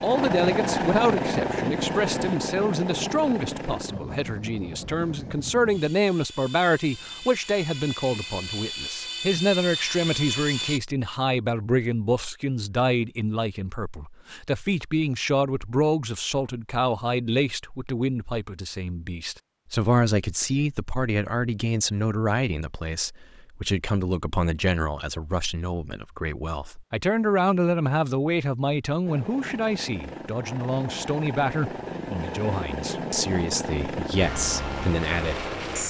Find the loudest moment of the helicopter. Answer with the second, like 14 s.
1 s.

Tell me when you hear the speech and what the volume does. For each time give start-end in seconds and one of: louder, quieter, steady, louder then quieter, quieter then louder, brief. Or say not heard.
0.0-35.5 steady.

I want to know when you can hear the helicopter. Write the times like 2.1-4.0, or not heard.
0.0-10.8, 29.1-35.8.